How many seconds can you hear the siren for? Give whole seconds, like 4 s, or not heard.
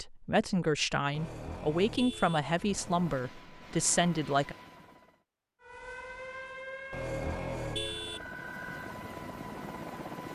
3 s.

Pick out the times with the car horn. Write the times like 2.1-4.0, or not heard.
1.1-3.1, 6.9-8.3.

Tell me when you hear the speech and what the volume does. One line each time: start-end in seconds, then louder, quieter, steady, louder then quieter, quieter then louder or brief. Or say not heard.
0.0-4.5 steady.